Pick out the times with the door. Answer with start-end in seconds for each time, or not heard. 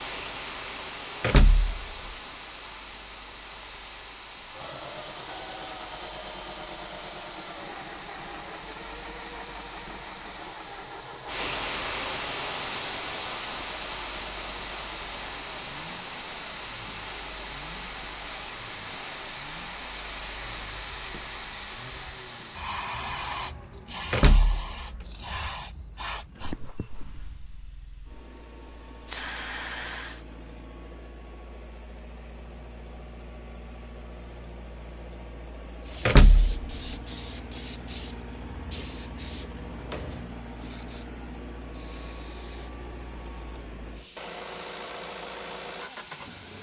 1.2-2.1, 24.1-25.1, 36.0-37.0.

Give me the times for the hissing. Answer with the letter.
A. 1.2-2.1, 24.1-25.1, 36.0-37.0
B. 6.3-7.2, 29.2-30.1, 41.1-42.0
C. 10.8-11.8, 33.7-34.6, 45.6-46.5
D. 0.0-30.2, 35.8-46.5
D.